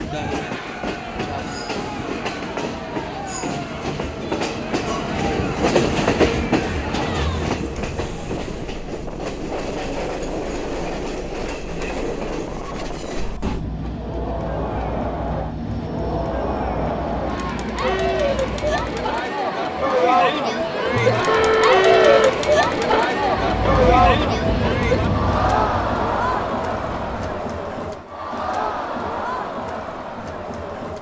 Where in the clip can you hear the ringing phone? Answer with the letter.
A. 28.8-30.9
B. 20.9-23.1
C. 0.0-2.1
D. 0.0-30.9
B.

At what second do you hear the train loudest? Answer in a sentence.
The loudest moment of the train is at 6 seconds.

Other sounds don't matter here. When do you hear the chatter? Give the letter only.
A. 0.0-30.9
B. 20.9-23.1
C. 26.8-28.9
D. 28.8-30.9
A.